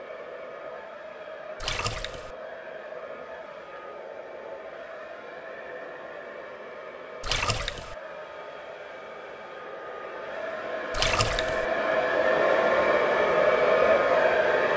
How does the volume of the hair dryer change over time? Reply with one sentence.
The volume of the hair dryer goes up.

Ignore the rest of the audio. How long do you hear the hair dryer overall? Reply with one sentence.
You can hear the hair dryer for 15 seconds altogether.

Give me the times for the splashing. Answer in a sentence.
The splashing can be heard from 1.6 to 2.4 s, from 7.2 to 8.0 s and from 10.9 to 11.7 s.